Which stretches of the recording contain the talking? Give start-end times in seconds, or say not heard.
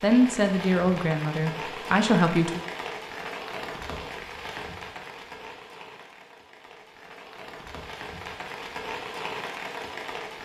0.0-2.6.